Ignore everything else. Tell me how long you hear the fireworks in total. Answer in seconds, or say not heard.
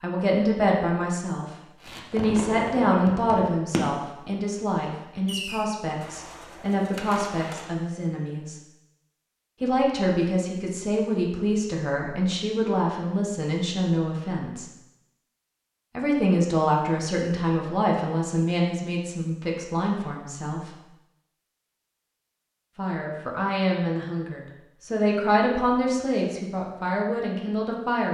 5 s.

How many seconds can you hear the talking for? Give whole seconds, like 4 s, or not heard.
23 s.